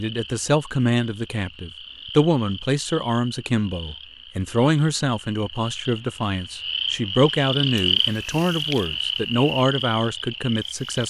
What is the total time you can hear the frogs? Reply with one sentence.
You can hear the frogs for 11 seconds altogether.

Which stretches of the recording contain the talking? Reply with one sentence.
The talking can be heard from 0.0 to 11.0 s.